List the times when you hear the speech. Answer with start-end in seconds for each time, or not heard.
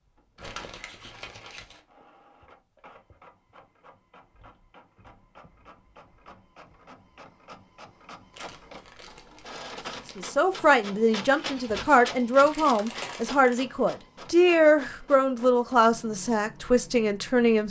10.2-17.6.